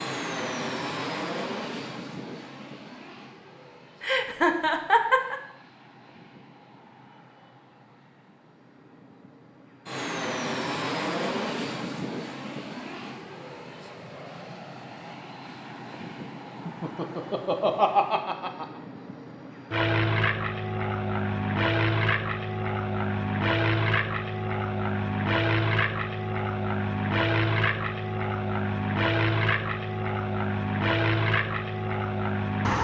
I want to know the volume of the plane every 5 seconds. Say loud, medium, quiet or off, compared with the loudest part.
medium, quiet, medium, medium, loud, loud, loud.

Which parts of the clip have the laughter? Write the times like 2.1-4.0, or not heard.
4.0-5.3, 16.6-18.6.